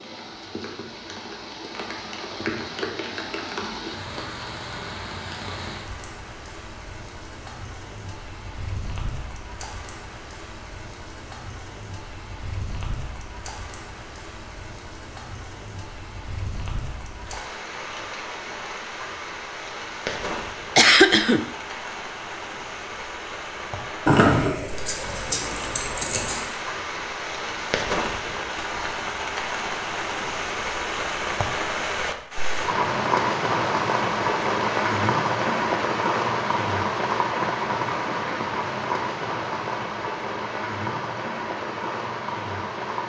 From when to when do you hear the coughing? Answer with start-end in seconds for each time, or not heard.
20.8-21.4.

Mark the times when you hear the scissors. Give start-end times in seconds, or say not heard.
24.1-26.4.